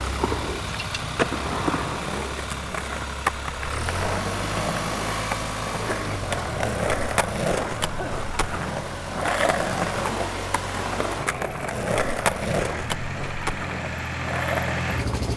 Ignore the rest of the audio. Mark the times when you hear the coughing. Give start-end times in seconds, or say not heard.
7.5-8.2.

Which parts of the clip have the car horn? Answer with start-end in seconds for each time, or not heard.
not heard.